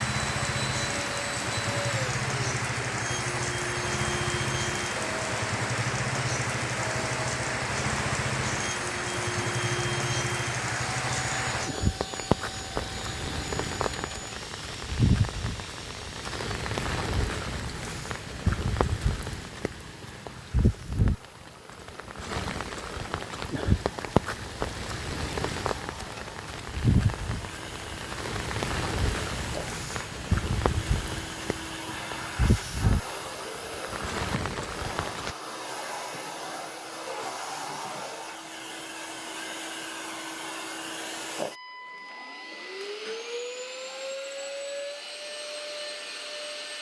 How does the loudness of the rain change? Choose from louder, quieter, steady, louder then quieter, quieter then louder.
steady.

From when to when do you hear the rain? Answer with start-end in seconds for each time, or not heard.
0.0-35.4.